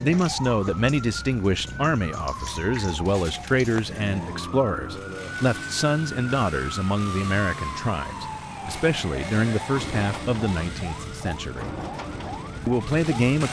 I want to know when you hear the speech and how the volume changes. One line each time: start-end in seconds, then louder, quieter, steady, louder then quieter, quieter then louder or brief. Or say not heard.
0.0-11.7 steady
12.7-13.4 brief.